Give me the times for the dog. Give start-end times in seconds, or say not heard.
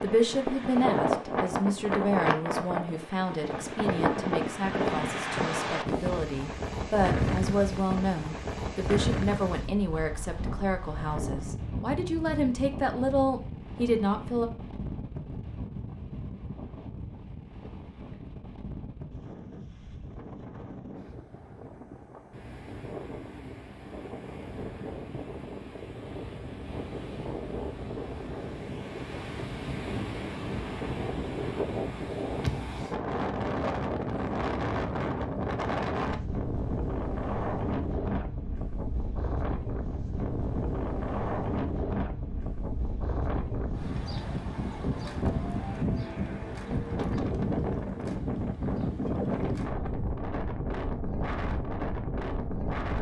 not heard.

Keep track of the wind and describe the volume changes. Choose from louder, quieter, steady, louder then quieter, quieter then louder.
quieter then louder.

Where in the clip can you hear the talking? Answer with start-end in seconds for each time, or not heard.
0.0-14.5.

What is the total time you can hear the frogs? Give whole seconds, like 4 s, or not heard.
not heard.